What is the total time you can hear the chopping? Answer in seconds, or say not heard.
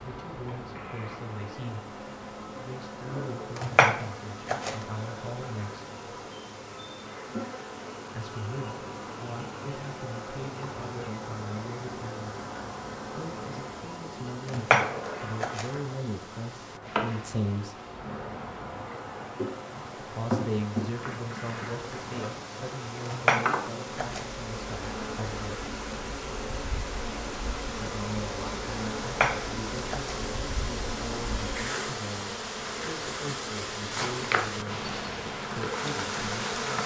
5 s.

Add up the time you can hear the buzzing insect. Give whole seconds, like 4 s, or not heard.
37 s.